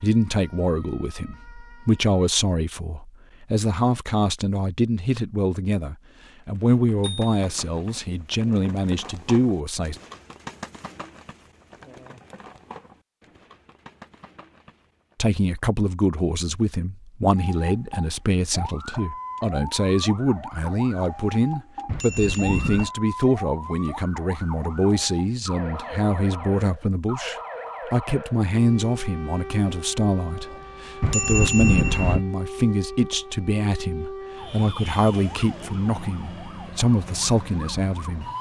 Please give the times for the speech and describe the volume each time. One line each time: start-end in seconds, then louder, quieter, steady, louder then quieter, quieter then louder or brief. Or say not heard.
0.0-9.9 steady
15.2-38.2 steady.